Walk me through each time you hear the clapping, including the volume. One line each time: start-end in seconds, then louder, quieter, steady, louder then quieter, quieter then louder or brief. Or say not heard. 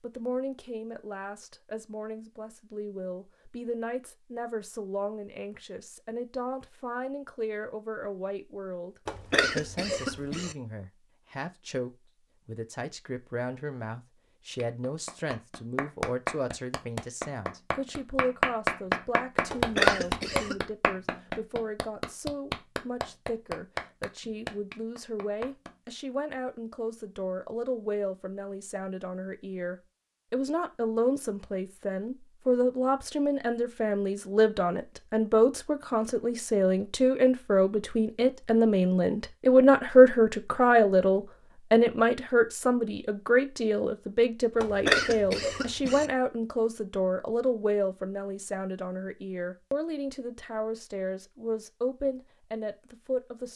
14.6-25.8 louder then quieter.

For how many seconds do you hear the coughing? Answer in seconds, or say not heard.
4 s.